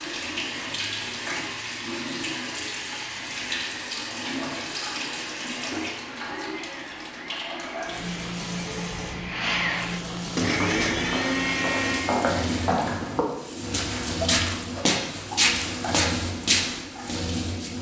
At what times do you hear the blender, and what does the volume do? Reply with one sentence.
You can hear the blender from 0.0 to 12.8 s, getting louder.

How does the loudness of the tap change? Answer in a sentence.
The loudness of the tap stays about the same.